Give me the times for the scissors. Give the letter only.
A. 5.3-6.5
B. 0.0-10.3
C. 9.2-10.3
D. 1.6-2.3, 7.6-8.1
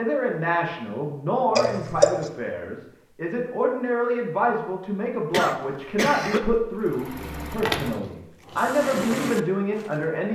D.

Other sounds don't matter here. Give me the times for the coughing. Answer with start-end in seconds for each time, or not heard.
5.3-6.5.